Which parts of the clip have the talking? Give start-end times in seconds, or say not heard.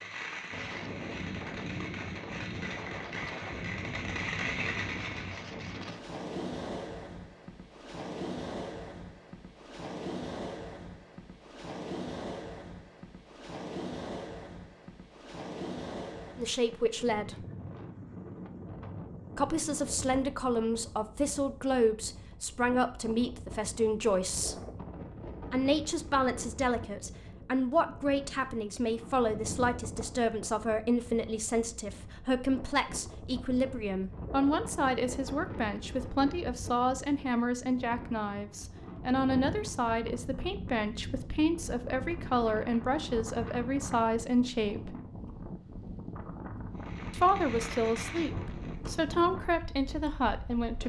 16.4-17.4, 19.4-24.6, 25.5-45.0, 47.1-50.8.